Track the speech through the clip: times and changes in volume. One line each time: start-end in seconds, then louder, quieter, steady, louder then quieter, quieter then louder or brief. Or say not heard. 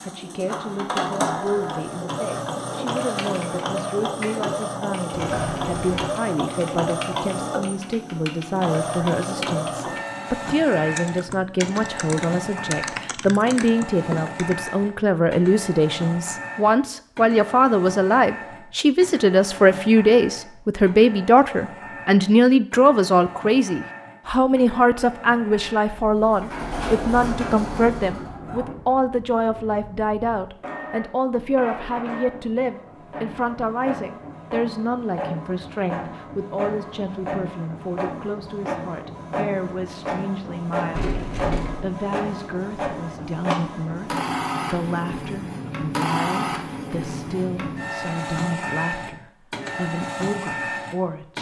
0.0-41.1 louder then quieter
41.8-51.3 steady.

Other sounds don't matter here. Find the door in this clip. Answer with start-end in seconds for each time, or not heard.
5.1-6.1, 26.0-28.3, 41.0-41.8.